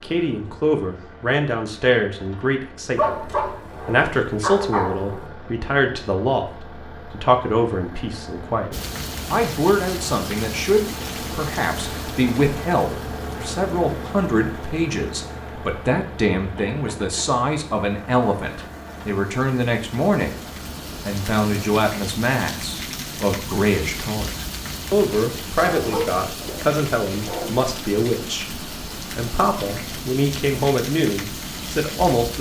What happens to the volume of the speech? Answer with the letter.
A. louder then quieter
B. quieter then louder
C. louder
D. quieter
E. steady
E.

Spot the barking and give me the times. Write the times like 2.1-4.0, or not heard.
3.0-5.2, 25.6-27.5.